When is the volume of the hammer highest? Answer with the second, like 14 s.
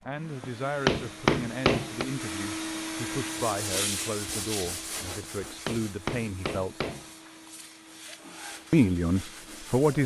1 s.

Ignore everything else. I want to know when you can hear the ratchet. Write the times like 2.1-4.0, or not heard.
not heard.